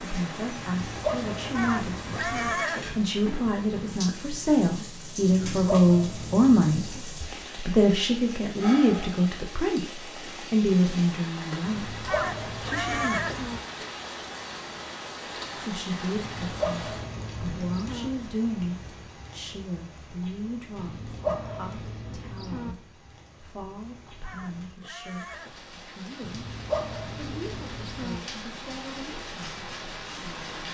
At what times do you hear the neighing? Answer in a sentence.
The neighing can be heard from 1.6 to 3.0 s, from 12.1 to 13.6 s and from 24.2 to 25.7 s.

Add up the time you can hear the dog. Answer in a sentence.
The dog can be heard for 12 seconds in total.